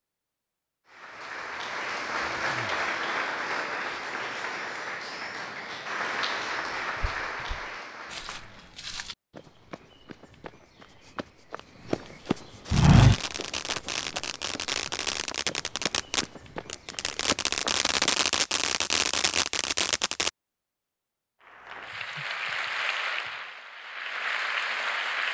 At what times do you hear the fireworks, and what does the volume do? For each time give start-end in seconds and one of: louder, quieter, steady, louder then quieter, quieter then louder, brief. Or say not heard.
12.7-20.3 louder.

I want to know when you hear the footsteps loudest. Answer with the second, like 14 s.
13 s.